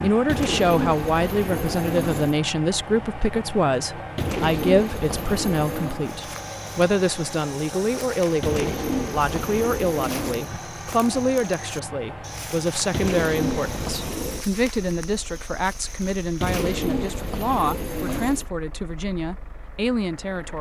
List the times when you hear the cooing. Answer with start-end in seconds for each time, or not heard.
0.2-2.4, 4.2-6.0, 8.4-10.5, 12.9-14.4, 16.4-18.4.